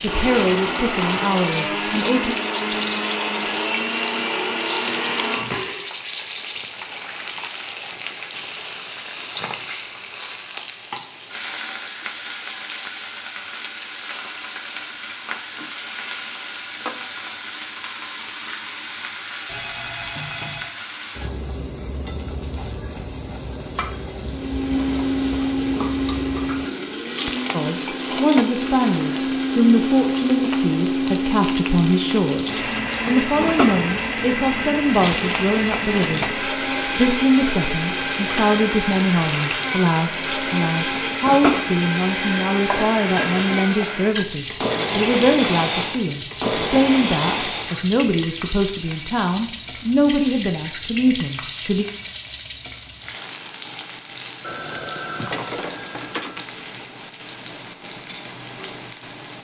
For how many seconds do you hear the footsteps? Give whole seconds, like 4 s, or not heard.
not heard.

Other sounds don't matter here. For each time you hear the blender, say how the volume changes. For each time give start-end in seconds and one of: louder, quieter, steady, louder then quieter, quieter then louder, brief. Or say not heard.
0.1-5.9 steady
24.2-47.9 steady.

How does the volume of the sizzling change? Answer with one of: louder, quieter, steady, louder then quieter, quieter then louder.
steady.